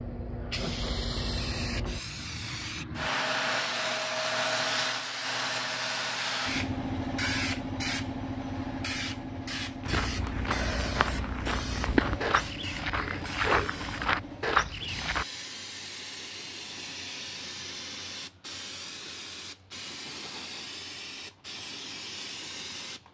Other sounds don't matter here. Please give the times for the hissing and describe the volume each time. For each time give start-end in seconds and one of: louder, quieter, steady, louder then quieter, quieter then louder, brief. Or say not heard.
0.0-23.0 quieter.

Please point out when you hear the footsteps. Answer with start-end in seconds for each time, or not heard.
9.8-15.2.